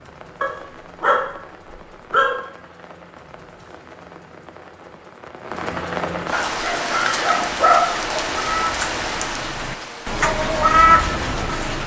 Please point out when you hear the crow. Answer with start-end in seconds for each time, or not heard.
6.8-11.8.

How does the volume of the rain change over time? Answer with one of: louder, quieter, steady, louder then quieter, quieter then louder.
louder.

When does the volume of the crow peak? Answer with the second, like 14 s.
11 s.